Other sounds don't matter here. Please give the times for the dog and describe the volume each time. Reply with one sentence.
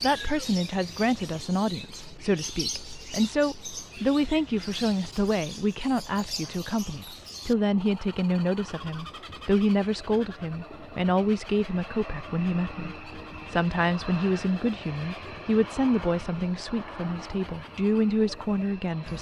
You can't hear the dog here.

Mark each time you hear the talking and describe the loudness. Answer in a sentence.
You can hear the talking from 0.0 to 19.1 s, at a steady volume.